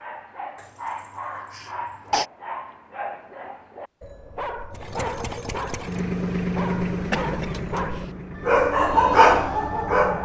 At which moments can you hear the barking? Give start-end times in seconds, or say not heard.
0.0-10.2.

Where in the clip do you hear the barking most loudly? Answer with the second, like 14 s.
9 s.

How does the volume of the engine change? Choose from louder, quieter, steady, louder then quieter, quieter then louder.
louder then quieter.